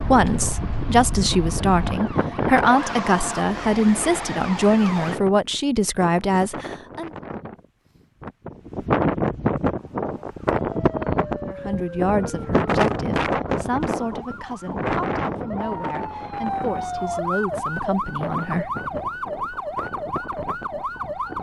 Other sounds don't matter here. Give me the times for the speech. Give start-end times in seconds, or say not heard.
0.0-7.1, 11.5-18.7.